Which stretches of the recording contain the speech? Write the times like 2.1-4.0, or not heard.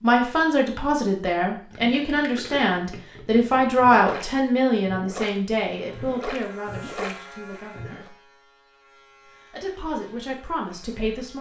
0.0-8.1, 9.5-11.3.